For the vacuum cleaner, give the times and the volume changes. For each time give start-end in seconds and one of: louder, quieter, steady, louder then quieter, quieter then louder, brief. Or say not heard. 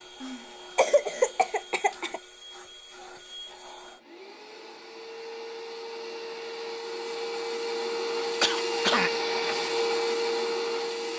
0.0-11.1 louder.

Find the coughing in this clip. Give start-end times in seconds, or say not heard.
0.2-2.2, 8.4-9.6.